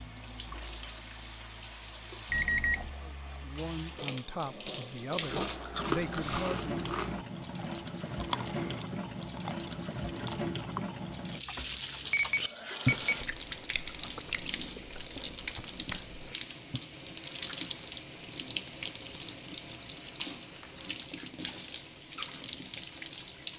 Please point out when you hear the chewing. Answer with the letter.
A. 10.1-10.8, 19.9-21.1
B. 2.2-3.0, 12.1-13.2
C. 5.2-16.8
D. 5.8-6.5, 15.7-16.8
C.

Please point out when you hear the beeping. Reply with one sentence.
The beeping can be heard from 2.2 to 3.0 s and from 12.1 to 13.2 s.